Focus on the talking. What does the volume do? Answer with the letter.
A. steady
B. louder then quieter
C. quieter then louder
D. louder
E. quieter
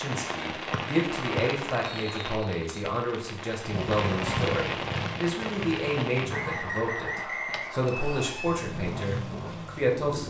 A.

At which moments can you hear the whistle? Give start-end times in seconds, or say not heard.
0.7-2.9, 6.3-8.3.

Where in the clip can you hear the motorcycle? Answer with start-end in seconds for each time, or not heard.
3.6-6.8, 8.6-10.2.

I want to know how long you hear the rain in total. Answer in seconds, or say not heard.
10 s.